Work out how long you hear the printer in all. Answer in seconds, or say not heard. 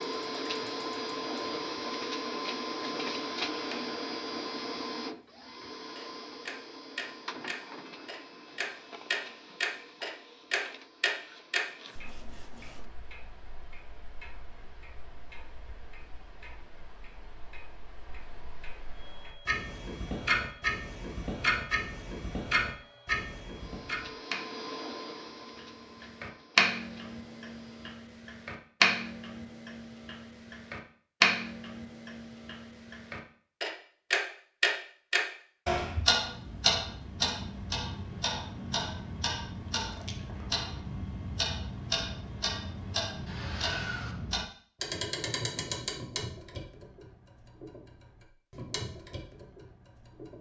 22 s.